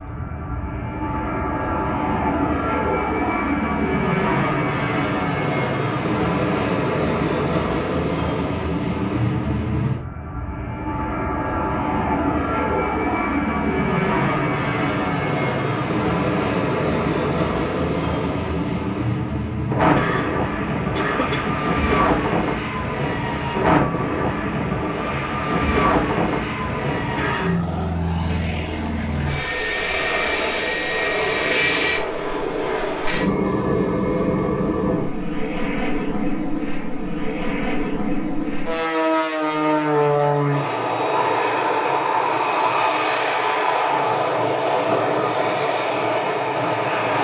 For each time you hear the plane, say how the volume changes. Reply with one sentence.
You can hear the plane from 0.0 to 47.1 s, at a steady volume.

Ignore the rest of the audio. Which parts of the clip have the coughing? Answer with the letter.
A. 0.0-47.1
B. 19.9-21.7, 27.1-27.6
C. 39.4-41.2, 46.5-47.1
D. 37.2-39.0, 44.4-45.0
B.